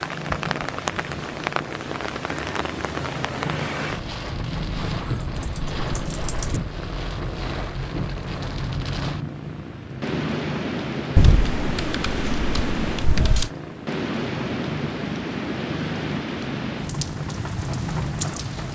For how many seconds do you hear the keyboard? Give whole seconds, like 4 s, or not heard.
4 s.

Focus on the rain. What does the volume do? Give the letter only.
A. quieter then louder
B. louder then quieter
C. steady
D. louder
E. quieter
C.